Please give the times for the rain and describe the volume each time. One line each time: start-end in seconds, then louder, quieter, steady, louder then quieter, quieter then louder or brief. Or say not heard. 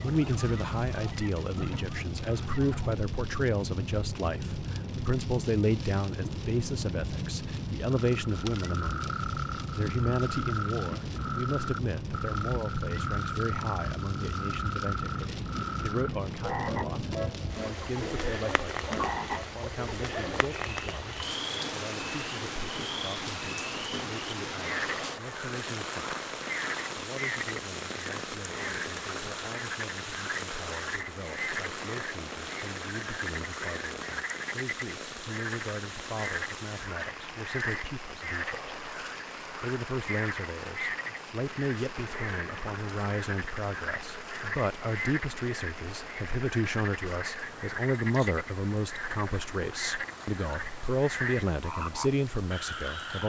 0.0-53.2 quieter.